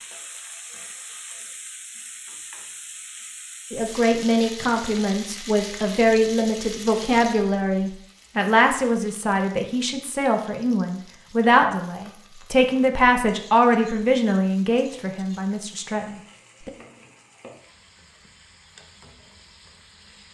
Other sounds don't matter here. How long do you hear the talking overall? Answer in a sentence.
The talking can be heard for 13 seconds in total.